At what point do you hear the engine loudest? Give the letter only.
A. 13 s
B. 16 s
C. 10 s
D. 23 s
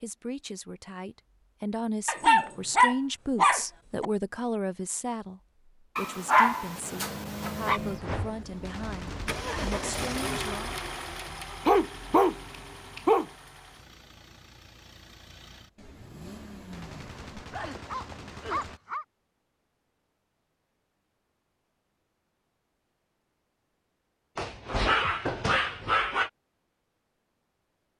C.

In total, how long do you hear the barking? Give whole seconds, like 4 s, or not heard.
9 s.